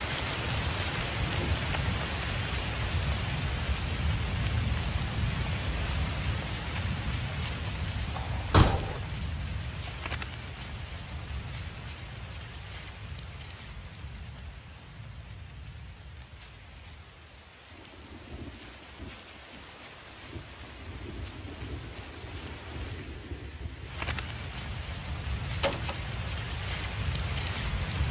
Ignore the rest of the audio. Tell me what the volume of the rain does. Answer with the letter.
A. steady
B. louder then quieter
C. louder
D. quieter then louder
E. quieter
D.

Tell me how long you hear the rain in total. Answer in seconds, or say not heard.
28 s.